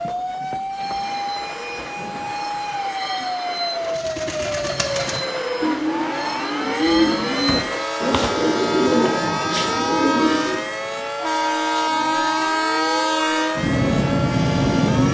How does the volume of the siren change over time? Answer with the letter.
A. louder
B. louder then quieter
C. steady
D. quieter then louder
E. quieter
C.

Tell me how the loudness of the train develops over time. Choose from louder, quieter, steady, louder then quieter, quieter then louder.
louder.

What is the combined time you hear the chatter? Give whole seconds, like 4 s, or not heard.
not heard.